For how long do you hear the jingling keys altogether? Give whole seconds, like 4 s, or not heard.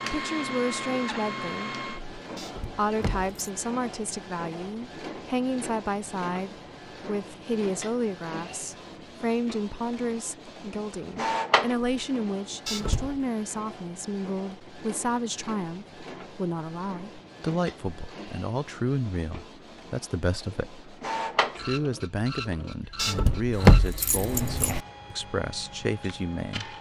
3 s.